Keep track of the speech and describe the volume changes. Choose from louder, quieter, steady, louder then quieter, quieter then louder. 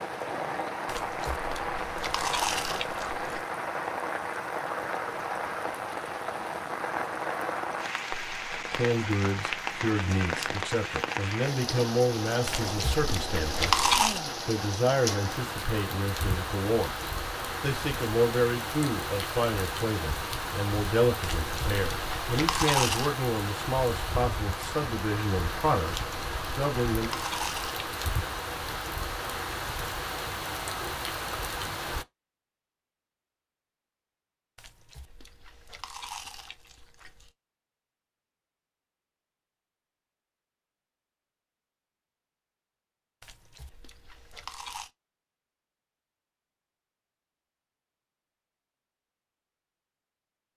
steady.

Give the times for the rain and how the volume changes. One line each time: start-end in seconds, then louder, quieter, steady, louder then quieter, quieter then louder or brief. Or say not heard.
0.0-32.0 steady.